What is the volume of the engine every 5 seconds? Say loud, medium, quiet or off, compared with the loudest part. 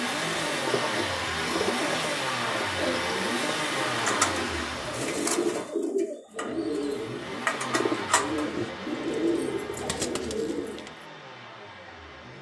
loud, medium, quiet.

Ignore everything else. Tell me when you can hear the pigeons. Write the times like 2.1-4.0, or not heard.
0.4-10.9.